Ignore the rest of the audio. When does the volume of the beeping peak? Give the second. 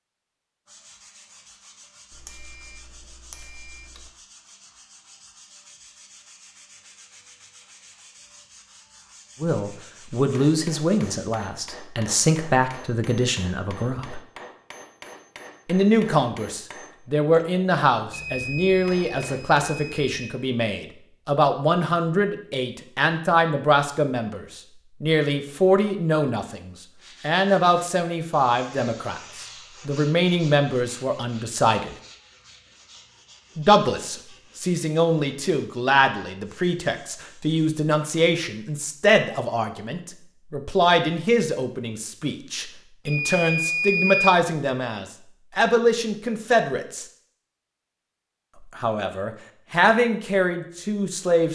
44 s.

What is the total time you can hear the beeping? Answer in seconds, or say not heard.
5 s.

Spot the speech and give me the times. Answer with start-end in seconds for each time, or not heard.
9.4-14.2, 15.7-31.9, 33.5-47.0, 48.8-51.4.